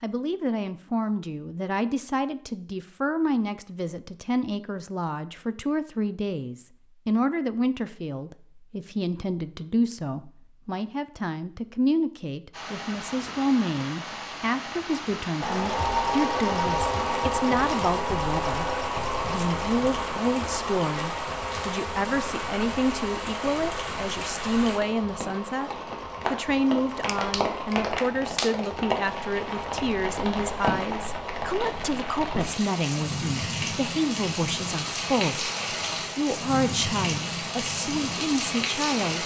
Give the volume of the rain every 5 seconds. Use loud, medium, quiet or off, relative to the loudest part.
off, off, medium, medium, medium, loud, loud, loud.